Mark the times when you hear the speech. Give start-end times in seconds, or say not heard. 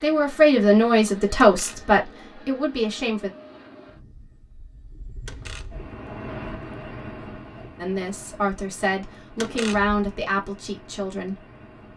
0.0-3.3, 7.8-11.3.